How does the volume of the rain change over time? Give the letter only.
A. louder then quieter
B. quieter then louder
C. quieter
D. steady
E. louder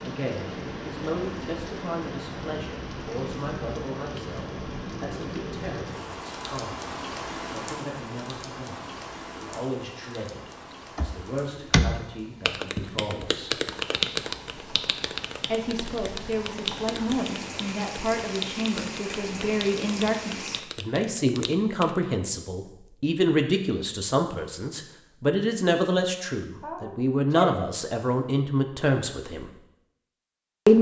B.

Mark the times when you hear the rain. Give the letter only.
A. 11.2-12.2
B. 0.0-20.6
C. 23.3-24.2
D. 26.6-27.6
B.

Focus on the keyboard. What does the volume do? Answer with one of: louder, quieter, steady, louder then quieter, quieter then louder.
quieter.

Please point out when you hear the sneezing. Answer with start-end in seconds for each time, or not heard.
26.6-27.6.